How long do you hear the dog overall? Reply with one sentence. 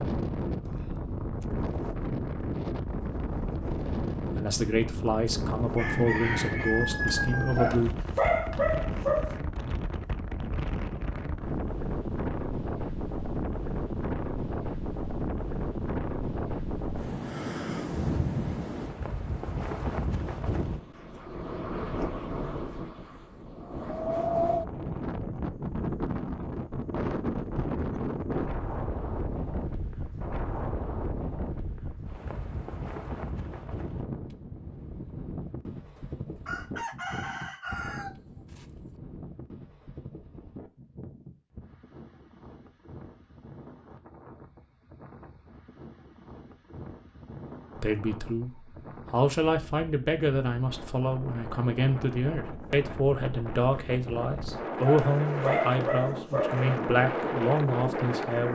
You can hear the dog for 4 seconds altogether.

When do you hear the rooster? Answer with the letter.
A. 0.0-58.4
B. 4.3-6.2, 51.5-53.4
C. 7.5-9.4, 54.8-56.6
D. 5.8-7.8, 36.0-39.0
D.